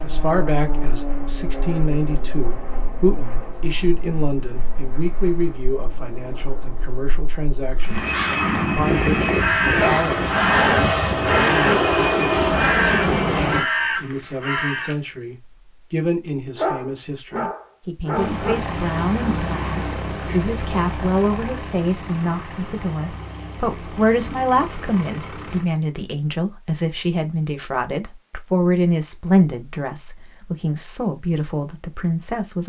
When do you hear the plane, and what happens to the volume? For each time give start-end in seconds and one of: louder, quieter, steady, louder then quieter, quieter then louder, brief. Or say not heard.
0.0-13.7 quieter then louder
18.1-25.6 quieter.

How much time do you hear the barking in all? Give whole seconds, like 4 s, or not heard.
4 s.